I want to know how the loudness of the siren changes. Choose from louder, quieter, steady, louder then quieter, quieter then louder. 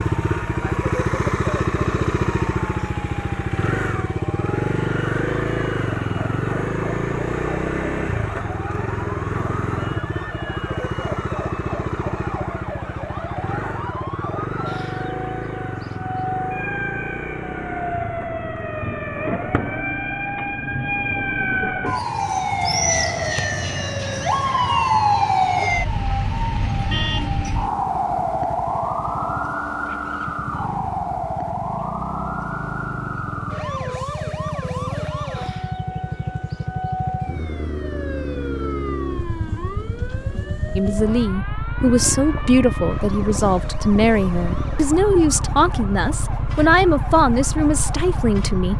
louder then quieter.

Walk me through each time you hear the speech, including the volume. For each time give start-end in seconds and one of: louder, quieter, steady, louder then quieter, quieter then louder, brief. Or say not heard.
40.8-48.7 steady.